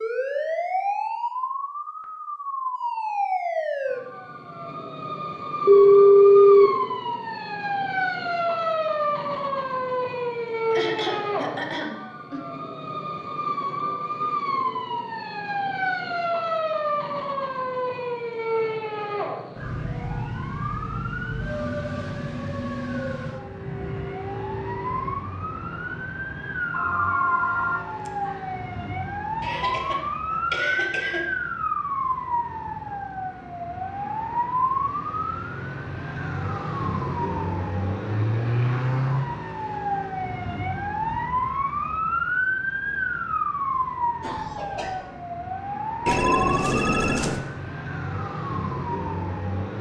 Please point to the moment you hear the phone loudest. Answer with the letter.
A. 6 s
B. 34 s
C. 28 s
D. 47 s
A.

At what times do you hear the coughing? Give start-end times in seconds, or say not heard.
10.7-12.4, 29.4-31.2, 44.2-45.0.